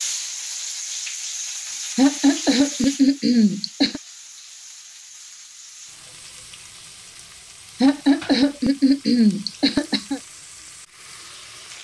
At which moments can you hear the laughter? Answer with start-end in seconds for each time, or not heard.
1.9-4.0, 7.8-10.2.